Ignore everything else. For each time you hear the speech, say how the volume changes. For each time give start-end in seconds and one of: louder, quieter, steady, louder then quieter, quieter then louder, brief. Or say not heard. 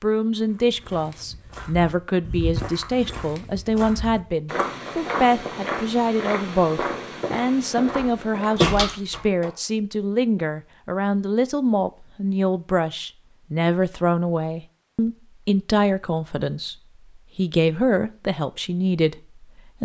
0.0-19.7 steady.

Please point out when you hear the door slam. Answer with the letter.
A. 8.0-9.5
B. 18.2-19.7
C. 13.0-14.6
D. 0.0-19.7
A.